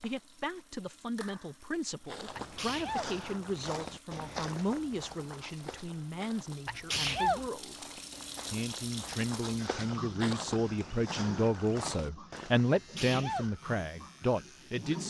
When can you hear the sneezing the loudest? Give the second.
7 s.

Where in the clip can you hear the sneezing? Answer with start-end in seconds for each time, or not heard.
2.4-3.1, 6.7-7.5, 12.7-13.6.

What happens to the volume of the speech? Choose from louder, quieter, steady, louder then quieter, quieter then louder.
louder.